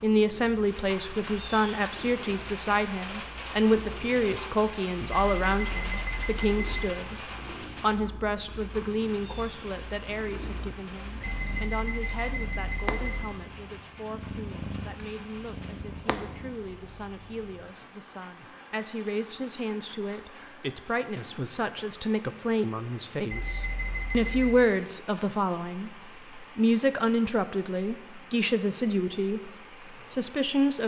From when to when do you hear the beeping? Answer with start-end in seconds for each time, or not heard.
5.1-6.9, 11.2-13.2, 23.3-24.7.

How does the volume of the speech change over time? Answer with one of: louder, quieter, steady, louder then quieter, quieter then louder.
quieter then louder.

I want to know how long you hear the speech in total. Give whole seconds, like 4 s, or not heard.
31 s.